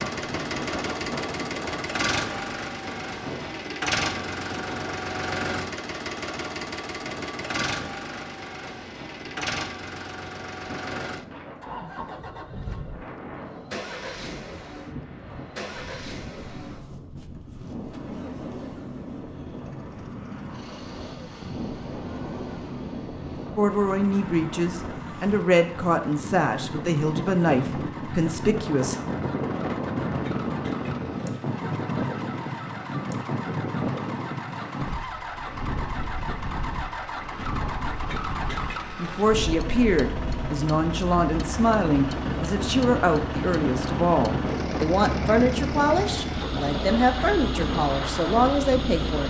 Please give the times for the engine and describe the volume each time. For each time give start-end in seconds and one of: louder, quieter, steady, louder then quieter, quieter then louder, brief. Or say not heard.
0.0-49.2 quieter then louder.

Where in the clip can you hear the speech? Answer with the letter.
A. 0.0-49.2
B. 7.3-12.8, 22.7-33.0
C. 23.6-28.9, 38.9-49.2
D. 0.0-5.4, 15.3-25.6
C.